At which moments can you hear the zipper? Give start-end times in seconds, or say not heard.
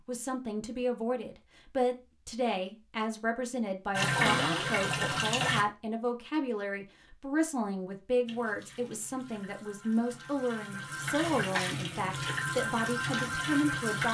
not heard.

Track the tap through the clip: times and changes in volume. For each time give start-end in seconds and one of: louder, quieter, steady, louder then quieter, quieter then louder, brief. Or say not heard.
3.9-5.7 brief
8.2-14.0 louder.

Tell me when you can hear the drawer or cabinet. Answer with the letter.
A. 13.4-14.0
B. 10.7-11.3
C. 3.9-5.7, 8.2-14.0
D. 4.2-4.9
D.